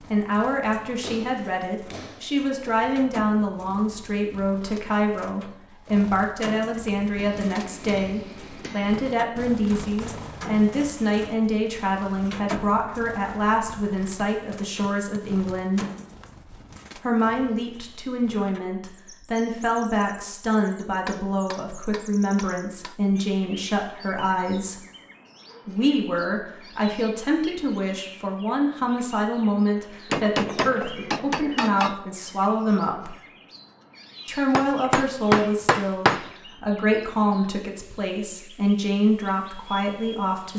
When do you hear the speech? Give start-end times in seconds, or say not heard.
0.1-15.8, 17.0-24.8, 25.6-33.1, 34.2-40.5.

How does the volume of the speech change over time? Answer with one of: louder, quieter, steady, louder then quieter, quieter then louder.
steady.